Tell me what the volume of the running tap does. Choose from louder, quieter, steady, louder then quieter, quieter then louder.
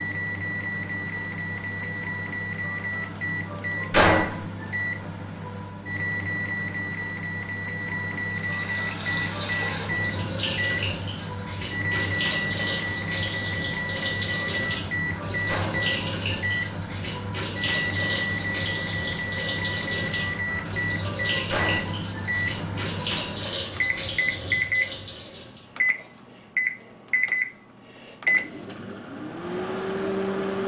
steady.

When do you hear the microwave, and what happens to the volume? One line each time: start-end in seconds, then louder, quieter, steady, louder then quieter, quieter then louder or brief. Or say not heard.
0.0-30.6 steady.